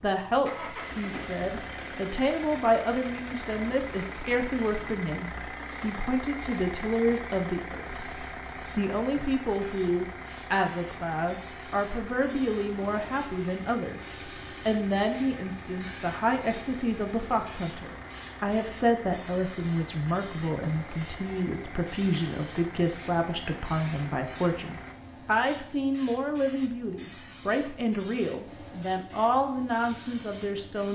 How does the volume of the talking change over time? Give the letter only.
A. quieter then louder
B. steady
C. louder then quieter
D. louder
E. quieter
B.